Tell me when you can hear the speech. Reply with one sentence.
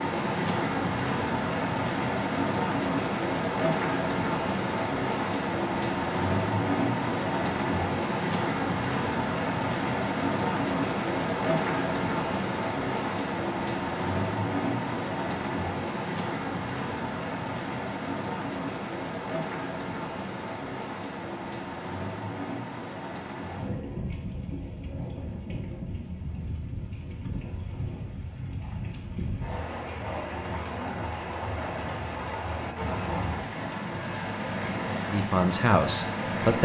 You can hear the speech from 35.0 to 36.5 s.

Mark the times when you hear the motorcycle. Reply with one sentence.
You can't hear the motorcycle here.